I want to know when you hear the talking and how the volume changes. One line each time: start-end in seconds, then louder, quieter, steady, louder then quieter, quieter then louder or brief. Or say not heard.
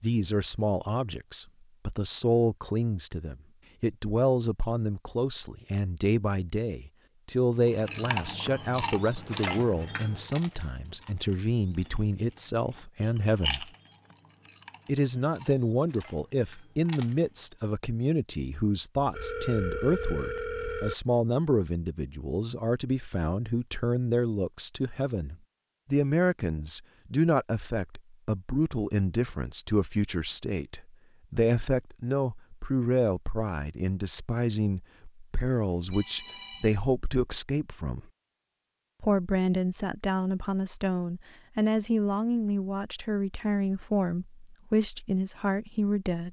0.0-13.7 steady
14.8-38.0 steady
39.0-46.2 steady.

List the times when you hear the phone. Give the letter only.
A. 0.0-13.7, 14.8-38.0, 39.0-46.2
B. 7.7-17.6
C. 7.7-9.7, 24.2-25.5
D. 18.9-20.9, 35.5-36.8
D.